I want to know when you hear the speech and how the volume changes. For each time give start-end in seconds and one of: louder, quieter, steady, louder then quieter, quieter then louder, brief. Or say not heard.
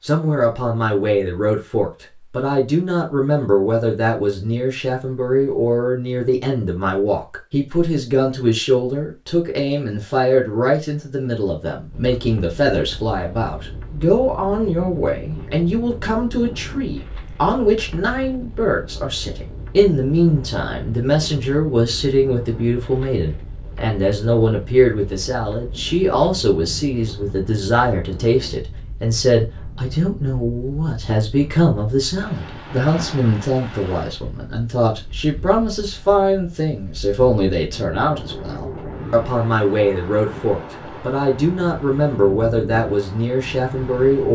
0.0-44.3 steady.